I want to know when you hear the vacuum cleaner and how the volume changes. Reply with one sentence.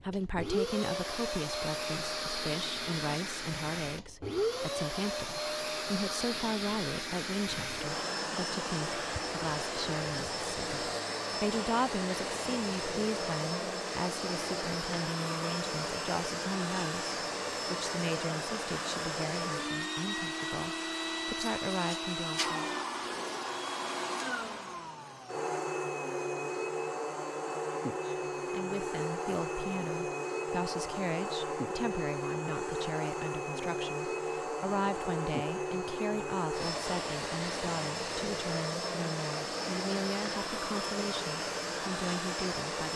The vacuum cleaner can be heard from 0.0 to 42.9 s, at a steady volume.